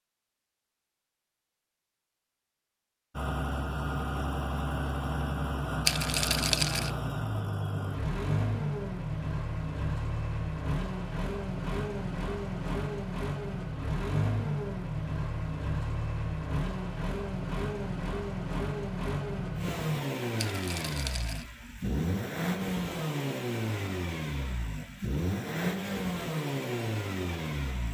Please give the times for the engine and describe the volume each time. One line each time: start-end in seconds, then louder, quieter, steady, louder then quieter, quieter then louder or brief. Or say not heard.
3.1-27.9 steady.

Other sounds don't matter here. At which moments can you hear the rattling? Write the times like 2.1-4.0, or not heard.
5.8-6.9, 20.4-21.4.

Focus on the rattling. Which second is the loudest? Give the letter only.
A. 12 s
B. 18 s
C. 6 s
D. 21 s
C.